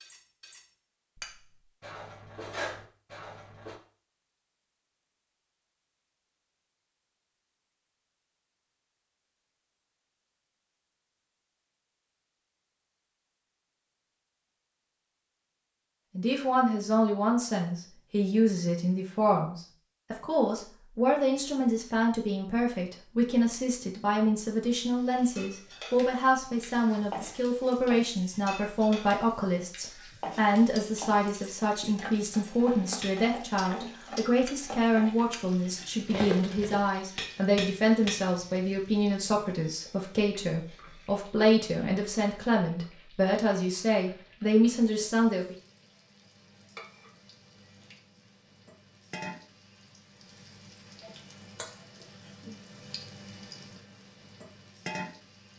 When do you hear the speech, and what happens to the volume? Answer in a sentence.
The speech can be heard from 16.1 to 45.5 s, at a steady volume.